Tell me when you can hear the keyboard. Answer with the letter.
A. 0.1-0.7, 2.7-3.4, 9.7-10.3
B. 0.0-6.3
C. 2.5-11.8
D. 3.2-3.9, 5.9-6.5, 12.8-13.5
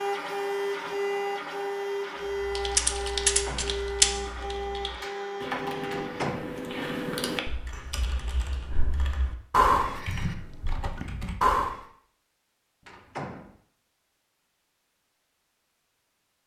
C.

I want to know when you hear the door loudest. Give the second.
6 s.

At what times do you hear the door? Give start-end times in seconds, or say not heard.
3.2-3.9, 5.9-6.5, 12.8-13.5.